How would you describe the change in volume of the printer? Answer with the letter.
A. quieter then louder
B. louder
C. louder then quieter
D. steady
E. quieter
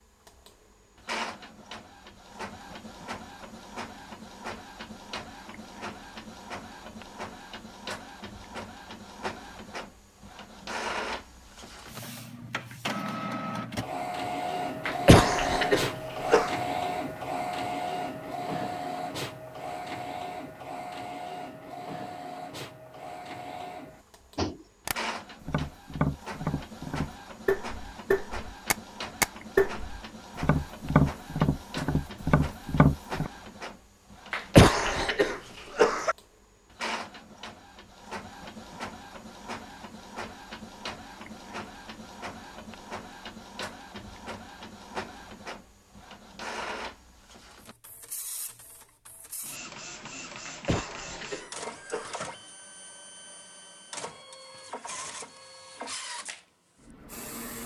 C.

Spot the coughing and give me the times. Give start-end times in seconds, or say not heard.
14.8-16.5, 34.3-36.1, 50.5-52.2.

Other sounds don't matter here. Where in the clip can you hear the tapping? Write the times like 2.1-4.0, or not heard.
24.4-33.3.